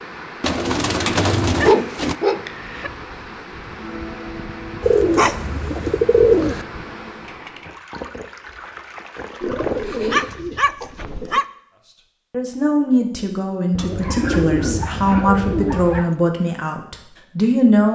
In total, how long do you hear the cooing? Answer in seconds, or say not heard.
8 s.